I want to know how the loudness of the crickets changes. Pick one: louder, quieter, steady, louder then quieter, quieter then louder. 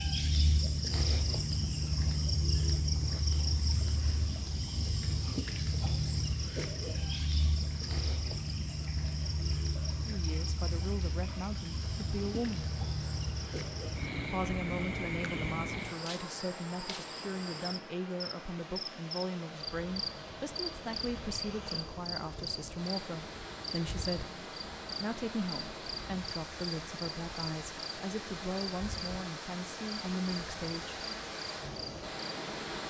quieter.